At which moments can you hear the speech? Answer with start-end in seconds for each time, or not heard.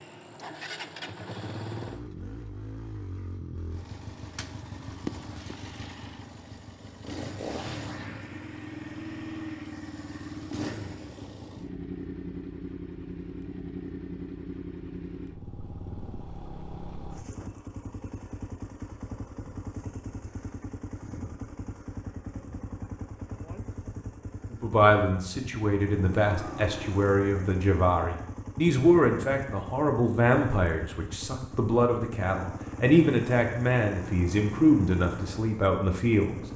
24.5-36.4.